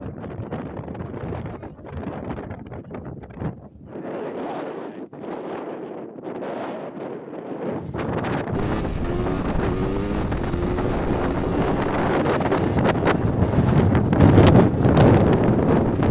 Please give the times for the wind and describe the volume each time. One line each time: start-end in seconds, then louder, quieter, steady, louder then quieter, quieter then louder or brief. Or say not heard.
0.0-16.0 louder.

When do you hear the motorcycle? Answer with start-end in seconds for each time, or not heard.
8.5-16.0.